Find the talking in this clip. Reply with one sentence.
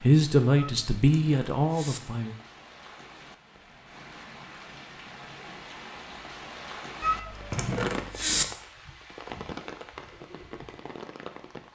The talking can be heard from 0.0 to 2.4 s.